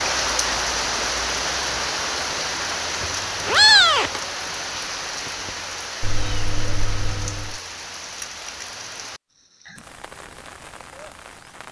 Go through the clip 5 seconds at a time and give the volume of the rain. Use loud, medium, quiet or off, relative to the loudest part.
loud, medium, quiet.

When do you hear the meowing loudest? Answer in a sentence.
The volume of the meowing peaks at 4 seconds.